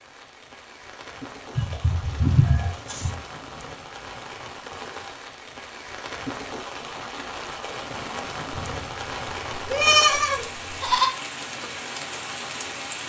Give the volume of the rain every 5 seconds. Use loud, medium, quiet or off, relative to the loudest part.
medium, loud, loud.